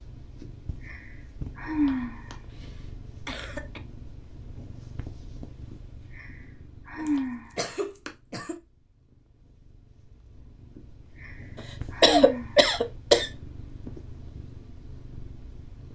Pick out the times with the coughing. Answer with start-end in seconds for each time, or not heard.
1.9-3.8, 7.0-8.6, 11.6-13.3.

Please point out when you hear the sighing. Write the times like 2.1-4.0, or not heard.
0.4-2.4, 5.7-8.1, 10.8-13.2.